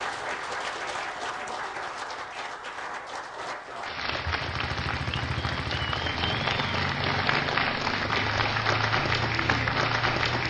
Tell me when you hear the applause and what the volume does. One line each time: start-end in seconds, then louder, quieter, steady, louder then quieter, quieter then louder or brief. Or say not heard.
0.0-10.4 louder.